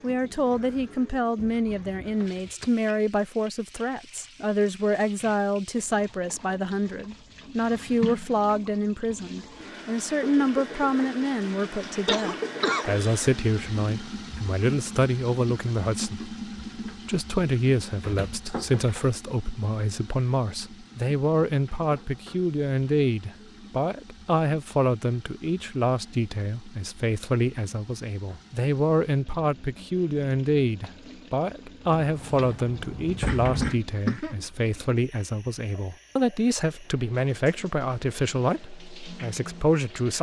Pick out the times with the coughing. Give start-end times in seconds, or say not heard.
12.1-13.1, 33.2-34.4.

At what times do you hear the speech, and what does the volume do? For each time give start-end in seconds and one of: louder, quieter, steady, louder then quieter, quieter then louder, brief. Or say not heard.
0.0-40.1 steady.